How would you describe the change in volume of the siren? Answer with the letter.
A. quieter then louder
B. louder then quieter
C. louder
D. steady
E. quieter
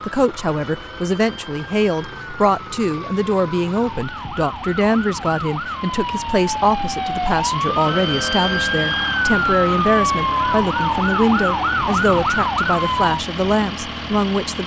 C.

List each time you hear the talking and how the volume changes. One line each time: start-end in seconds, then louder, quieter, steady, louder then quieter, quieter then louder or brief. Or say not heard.
0.1-14.6 steady.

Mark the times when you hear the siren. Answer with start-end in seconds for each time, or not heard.
0.1-13.2.